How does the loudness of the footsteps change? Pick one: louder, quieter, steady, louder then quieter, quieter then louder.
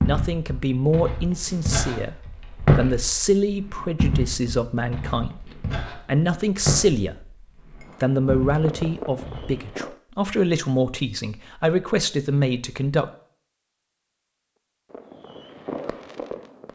louder then quieter.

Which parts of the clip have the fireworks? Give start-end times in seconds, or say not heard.
7.8-10.0, 14.8-16.7.